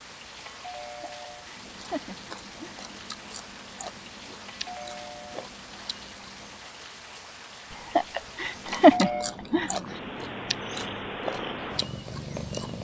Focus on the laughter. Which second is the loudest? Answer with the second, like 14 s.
9 s.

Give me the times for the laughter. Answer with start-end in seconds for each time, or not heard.
1.0-2.8, 8.0-9.7.